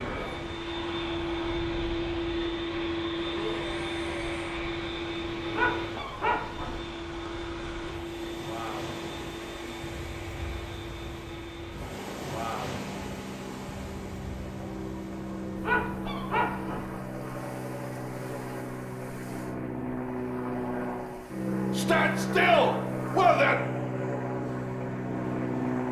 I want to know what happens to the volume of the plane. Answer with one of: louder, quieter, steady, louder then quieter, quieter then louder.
quieter then louder.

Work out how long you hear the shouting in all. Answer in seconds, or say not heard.
3 s.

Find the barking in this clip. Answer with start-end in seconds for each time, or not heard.
5.5-6.8, 15.6-16.9.